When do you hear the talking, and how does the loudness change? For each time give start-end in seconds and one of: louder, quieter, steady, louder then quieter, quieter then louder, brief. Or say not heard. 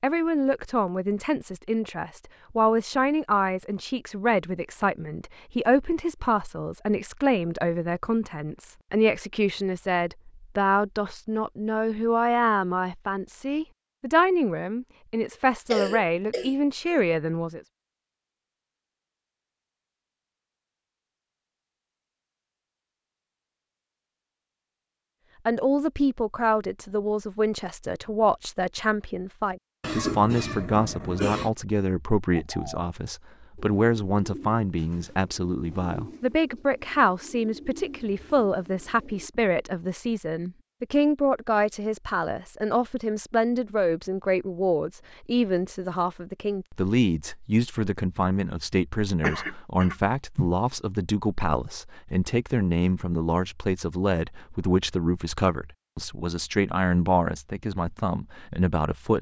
0.0-17.6 steady
25.4-59.1 steady.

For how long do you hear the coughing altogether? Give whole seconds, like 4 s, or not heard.
5 s.